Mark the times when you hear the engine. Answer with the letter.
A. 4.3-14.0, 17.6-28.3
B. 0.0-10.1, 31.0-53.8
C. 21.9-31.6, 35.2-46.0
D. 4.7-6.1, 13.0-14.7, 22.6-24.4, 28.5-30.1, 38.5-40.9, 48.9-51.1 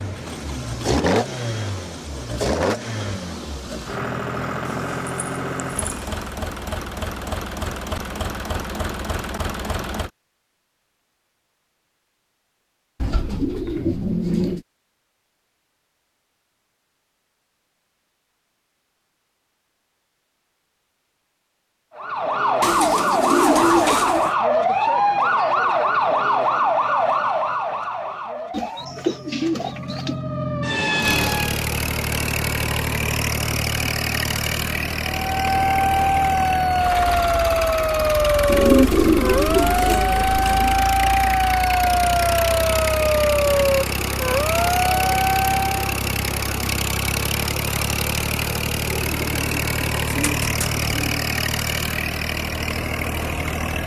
B.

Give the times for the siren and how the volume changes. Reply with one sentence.
You can hear the siren from 21.9 to 31.6 s, getting quieter then louder; and from 35.2 to 46.0 s, at a steady volume.